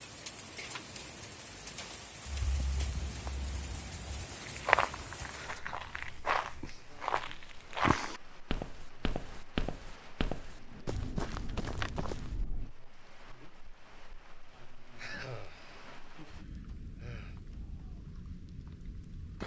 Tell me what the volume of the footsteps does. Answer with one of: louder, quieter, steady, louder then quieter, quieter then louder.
louder then quieter.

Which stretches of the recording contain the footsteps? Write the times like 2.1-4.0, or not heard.
2.2-12.7.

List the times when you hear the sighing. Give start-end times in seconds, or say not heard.
14.9-17.4.